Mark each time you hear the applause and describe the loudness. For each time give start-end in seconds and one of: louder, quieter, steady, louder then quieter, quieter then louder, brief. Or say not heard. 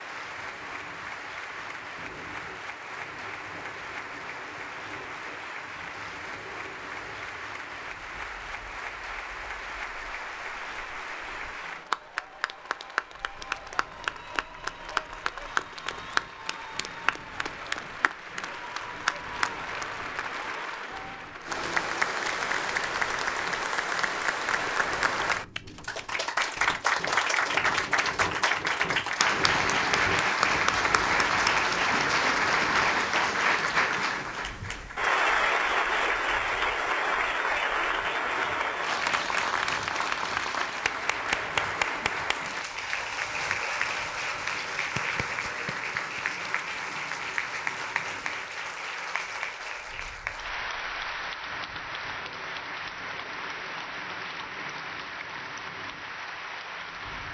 0.0-57.2 louder then quieter.